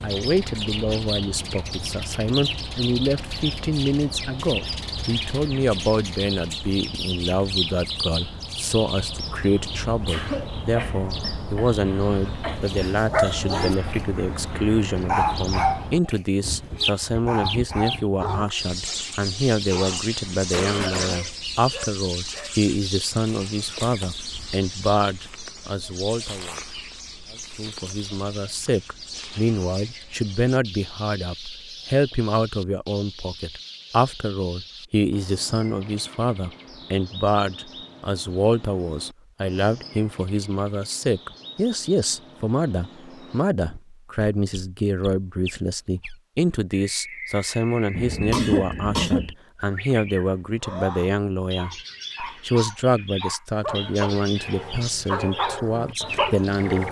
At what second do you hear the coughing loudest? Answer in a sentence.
The volume of the coughing peaks at 48 seconds.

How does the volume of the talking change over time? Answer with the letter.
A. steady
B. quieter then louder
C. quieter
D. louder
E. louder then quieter
A.